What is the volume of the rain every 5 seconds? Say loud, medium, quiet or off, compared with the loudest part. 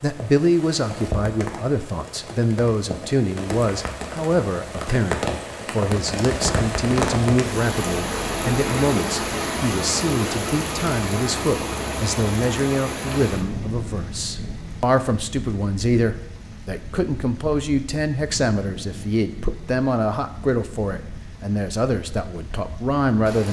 medium, loud, loud, quiet, quiet.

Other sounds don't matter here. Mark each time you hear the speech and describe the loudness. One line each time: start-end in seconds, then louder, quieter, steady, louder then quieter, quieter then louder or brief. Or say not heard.
0.0-23.4 steady.